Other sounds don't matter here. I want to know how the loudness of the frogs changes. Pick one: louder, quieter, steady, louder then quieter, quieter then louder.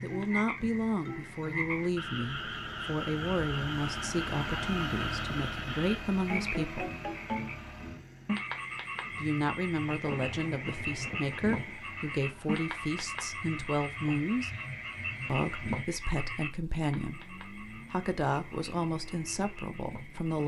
quieter.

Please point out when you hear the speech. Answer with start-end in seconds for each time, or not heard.
0.0-6.9, 9.2-14.5, 15.2-20.4.